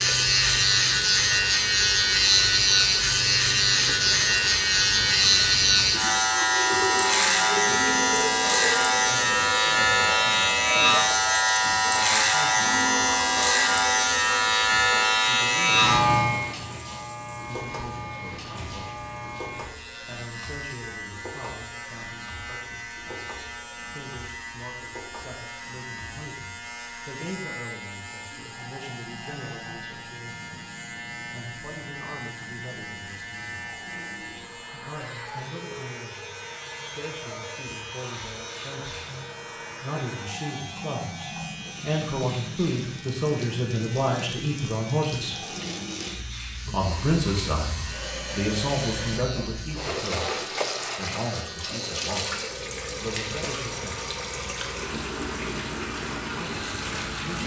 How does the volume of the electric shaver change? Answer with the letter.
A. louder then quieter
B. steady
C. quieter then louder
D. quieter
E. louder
D.